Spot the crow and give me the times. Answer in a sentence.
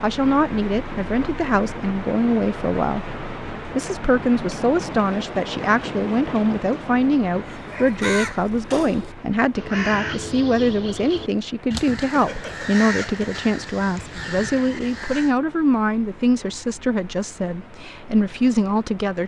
The crow can be heard from 7.5 to 15.3 s.